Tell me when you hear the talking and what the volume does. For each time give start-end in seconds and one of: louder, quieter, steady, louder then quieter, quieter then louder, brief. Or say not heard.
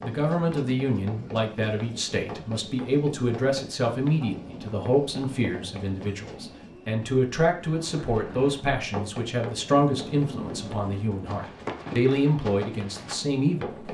0.0-13.8 steady.